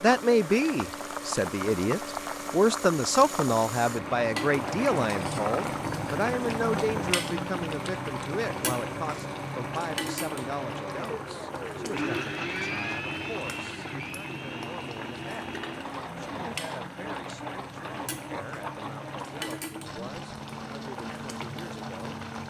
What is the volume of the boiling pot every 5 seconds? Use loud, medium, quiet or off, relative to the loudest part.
loud, loud, medium, medium, medium.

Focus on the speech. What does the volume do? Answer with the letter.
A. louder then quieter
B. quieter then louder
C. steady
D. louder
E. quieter
E.